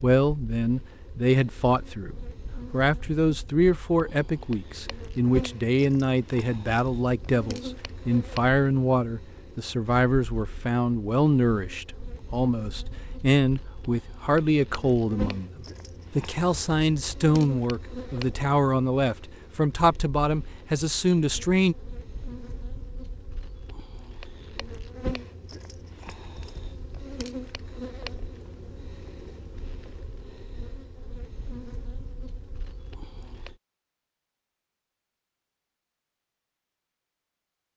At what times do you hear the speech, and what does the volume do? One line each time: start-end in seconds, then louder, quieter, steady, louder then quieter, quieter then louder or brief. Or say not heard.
0.0-21.8 steady.